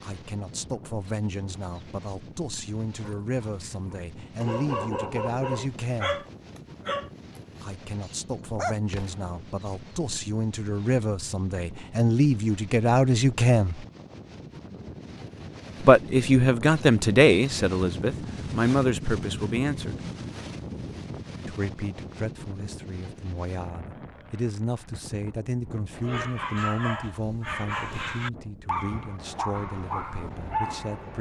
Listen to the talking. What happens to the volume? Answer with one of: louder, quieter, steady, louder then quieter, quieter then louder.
louder then quieter.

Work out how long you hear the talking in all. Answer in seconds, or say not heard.
26 s.